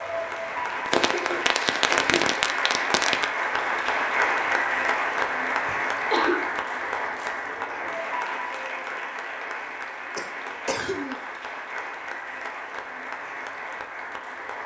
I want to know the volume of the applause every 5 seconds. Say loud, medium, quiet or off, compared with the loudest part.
loud, loud, medium.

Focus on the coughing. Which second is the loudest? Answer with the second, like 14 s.
6 s.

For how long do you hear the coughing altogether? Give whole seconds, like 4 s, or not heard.
3 s.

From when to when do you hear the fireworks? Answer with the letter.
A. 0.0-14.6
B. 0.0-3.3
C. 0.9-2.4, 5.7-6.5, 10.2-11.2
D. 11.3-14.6
B.